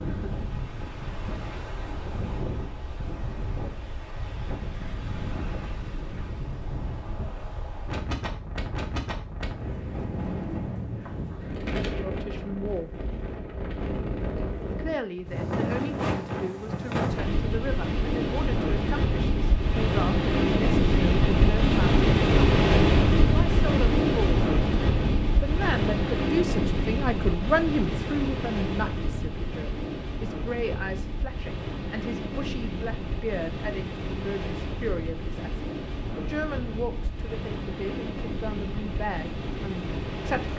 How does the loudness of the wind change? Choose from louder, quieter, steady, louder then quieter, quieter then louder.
louder then quieter.